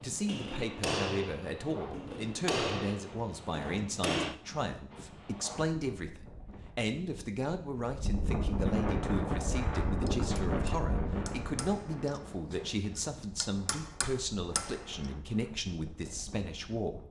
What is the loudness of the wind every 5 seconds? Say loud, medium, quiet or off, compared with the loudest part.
medium, loud, loud, quiet.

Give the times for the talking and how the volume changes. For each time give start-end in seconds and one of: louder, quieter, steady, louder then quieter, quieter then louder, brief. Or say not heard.
0.0-17.0 steady.